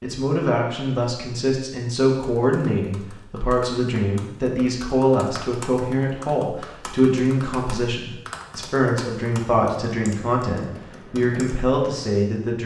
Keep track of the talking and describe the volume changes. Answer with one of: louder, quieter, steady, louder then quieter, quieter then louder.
steady.